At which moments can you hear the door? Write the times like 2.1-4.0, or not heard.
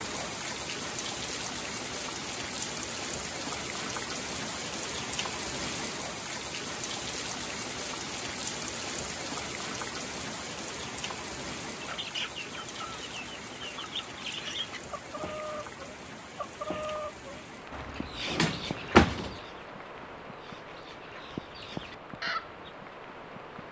18.2-19.4.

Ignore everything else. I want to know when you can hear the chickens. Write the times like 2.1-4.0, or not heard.
11.8-22.6.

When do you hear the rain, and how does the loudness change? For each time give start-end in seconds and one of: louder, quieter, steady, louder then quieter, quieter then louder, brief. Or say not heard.
0.0-23.6 quieter.